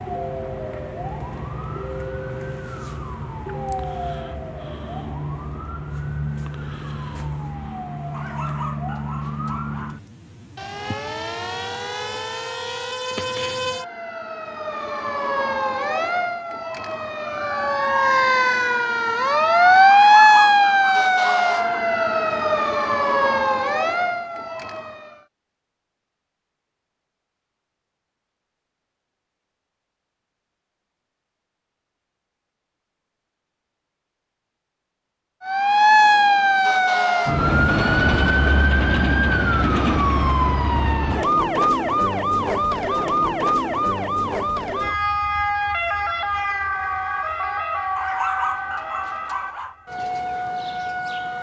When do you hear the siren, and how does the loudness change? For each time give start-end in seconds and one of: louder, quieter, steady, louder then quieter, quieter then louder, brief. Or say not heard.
0.0-25.2 louder
35.4-51.3 quieter.